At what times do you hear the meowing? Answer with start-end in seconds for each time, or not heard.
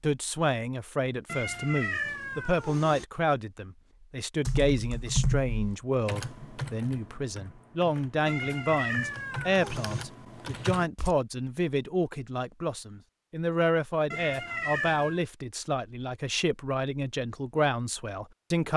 1.2-3.0, 8.2-10.1, 14.1-15.2.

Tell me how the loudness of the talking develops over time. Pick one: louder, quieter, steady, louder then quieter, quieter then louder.
steady.